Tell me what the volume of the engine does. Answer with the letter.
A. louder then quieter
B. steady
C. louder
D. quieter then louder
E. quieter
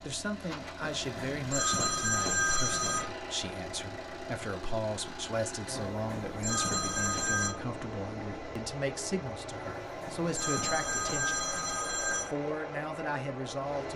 B.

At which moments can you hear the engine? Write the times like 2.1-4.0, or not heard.
0.0-13.9.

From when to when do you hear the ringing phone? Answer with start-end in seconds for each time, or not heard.
0.9-3.0, 5.9-7.5, 9.8-12.3.